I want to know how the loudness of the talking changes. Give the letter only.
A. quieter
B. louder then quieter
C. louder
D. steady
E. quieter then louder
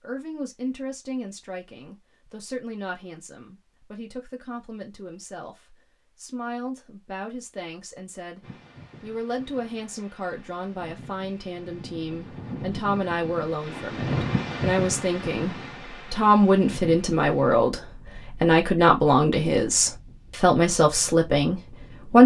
C.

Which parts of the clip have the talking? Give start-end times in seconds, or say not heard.
0.0-22.2.